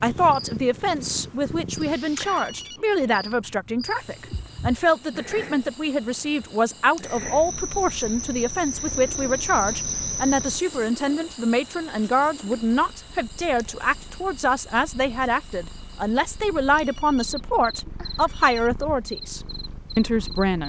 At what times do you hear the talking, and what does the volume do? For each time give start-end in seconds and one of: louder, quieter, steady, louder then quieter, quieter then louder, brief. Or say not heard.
0.0-20.6 steady.